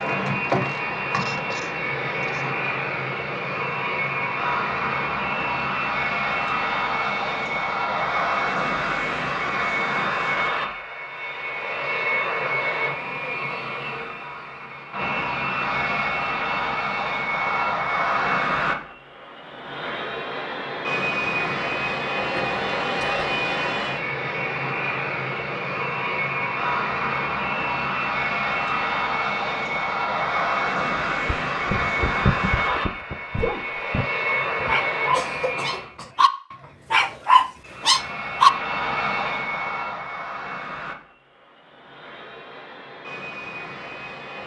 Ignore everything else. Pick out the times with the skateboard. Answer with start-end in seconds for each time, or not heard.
not heard.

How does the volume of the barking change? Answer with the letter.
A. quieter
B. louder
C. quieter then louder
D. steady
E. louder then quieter
B.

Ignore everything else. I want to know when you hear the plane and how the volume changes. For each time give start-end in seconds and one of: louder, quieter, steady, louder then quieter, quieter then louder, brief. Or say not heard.
0.0-35.9 steady
37.6-44.4 quieter then louder.